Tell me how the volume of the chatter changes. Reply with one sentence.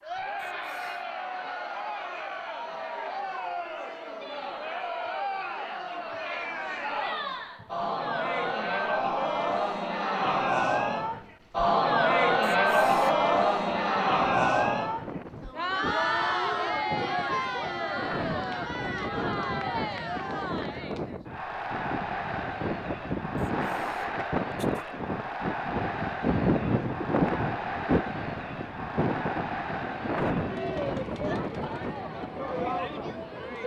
The volume of the chatter goes up, then down.